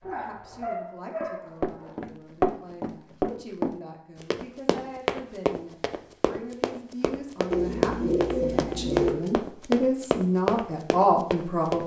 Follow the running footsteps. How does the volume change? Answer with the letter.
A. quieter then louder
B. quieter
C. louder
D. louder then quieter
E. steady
A.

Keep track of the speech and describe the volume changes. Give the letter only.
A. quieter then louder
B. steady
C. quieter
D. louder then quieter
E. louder
E.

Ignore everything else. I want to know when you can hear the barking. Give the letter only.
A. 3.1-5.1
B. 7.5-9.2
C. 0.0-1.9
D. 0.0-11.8
C.